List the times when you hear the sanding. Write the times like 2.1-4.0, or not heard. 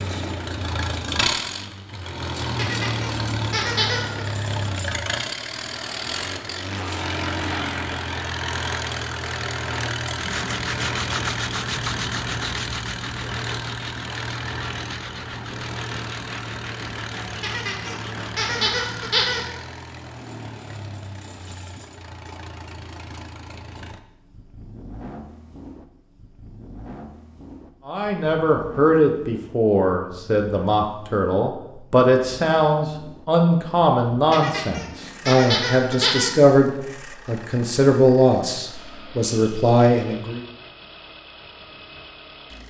10.2-19.4.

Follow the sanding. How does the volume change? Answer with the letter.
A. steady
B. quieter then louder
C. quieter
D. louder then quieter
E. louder
C.